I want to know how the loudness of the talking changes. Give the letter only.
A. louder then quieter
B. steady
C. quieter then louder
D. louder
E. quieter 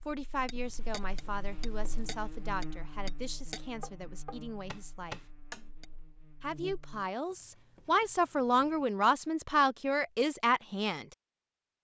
D.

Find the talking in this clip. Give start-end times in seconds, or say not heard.
0.0-5.2, 6.4-11.1.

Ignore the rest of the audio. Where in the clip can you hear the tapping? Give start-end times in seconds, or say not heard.
0.5-5.8.